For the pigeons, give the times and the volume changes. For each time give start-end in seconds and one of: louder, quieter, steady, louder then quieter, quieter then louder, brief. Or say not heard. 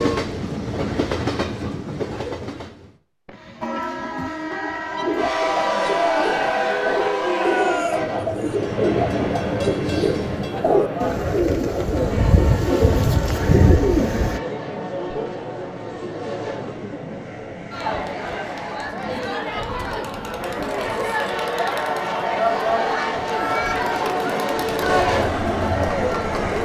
5.0-14.4 louder.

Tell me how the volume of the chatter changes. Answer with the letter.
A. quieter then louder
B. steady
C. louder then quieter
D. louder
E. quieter
A.